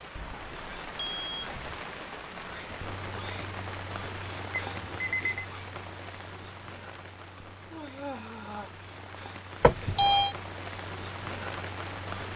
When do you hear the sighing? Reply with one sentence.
The sighing can be heard from 7.7 to 8.8 s.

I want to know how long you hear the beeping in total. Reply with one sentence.
You can hear the beeping for 3 seconds altogether.